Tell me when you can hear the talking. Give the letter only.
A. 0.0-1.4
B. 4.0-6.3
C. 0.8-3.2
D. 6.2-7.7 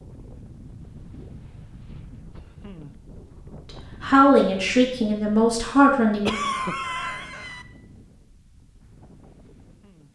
B.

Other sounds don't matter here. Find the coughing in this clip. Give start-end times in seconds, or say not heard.
6.2-7.7.